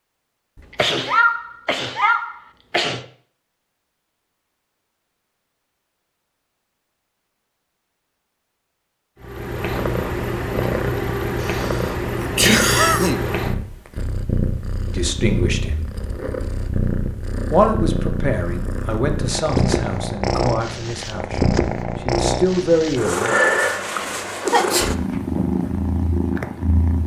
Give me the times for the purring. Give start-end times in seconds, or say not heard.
9.2-27.0.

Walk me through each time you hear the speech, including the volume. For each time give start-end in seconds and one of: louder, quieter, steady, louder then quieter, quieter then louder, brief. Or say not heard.
14.9-15.8 brief
17.5-23.4 quieter then louder.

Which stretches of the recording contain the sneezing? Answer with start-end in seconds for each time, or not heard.
0.6-3.0, 11.4-13.2, 24.0-24.9.